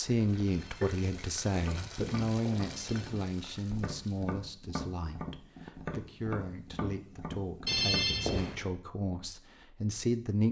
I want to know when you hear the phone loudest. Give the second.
8 s.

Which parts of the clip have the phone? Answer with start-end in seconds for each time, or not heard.
0.5-3.1, 7.7-8.7.